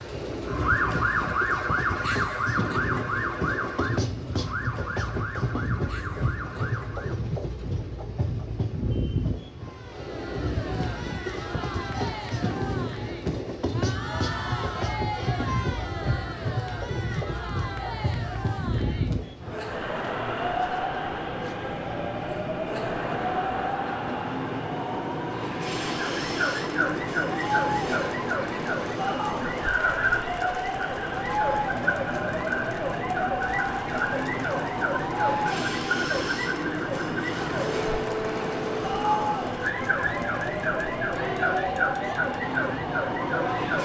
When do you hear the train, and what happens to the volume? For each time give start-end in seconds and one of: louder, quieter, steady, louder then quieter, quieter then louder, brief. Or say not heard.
0.0-43.7 steady.